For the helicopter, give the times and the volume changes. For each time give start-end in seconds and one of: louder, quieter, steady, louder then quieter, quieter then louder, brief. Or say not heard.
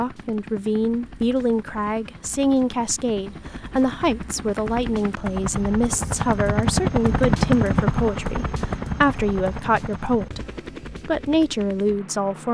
0.0-12.4 louder then quieter.